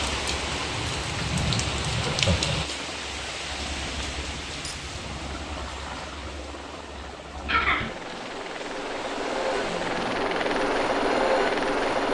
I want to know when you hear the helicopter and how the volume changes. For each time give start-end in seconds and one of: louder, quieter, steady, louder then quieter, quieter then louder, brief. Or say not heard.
0.0-12.1 louder.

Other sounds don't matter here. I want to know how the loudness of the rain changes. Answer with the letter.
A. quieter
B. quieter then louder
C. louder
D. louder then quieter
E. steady
A.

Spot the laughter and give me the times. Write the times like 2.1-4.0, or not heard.
2.0-2.5, 7.5-8.0.